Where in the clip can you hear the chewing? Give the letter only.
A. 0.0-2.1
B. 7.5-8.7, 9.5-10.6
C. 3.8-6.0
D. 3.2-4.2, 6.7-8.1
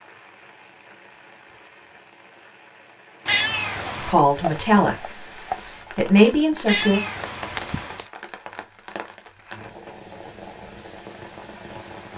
C.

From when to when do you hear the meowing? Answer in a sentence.
You can hear the meowing from 3.2 to 4.2 s and from 6.7 to 8.1 s.